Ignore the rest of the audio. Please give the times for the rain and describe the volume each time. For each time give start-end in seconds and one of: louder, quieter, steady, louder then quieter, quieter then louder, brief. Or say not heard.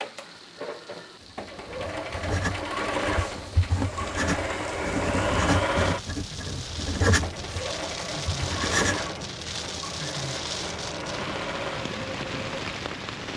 0.0-13.3 louder.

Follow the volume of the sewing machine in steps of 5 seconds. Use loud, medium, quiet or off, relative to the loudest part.
loud, loud, medium.